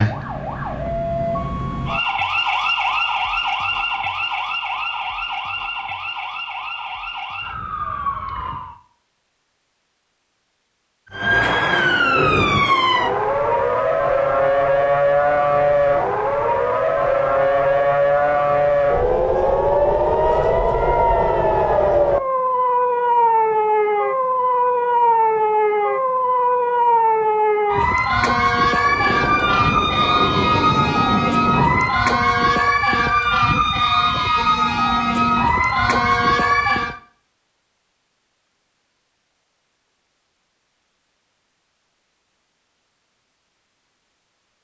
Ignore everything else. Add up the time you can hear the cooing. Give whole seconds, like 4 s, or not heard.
not heard.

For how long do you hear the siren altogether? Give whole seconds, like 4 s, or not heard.
35 s.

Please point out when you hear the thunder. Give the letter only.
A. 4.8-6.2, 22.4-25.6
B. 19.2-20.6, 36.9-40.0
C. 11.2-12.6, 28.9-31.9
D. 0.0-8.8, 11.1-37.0
C.